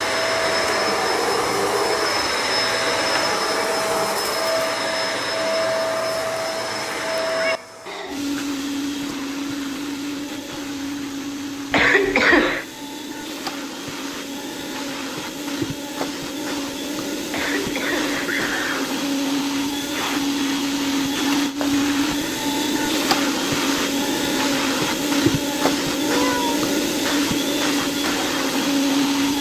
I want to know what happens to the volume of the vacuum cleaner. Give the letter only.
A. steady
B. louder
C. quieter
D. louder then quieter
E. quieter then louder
E.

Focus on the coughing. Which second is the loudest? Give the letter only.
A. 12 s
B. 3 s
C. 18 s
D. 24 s
A.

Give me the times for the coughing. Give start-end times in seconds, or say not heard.
11.7-12.7, 17.3-18.9.